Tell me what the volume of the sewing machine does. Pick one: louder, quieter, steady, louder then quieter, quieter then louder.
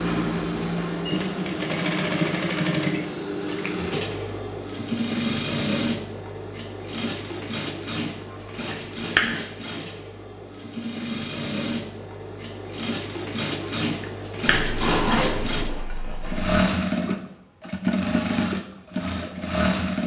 quieter then louder.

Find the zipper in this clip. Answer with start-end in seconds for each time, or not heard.
14.6-16.5.